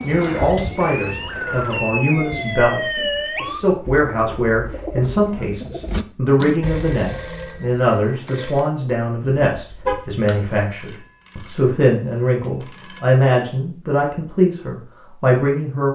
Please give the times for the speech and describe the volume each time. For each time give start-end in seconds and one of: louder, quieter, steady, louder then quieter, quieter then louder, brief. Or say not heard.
0.0-15.9 steady.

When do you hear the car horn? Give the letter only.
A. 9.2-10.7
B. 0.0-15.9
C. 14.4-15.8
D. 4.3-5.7
A.